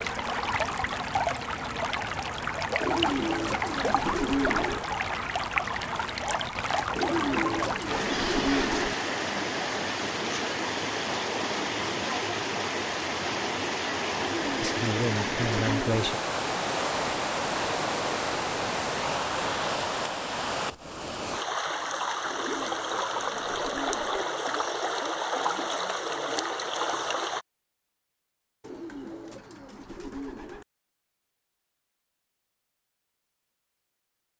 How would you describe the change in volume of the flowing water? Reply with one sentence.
The volume of the flowing water stays about the same.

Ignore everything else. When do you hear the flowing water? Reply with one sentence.
The flowing water can be heard from 0.0 to 27.4 s.